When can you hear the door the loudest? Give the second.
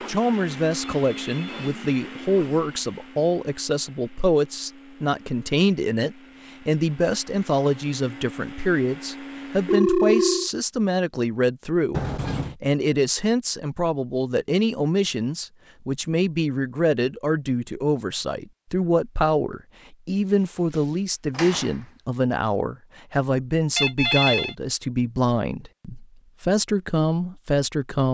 12 s.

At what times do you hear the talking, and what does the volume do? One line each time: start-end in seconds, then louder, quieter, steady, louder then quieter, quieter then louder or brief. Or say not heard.
0.1-28.1 steady.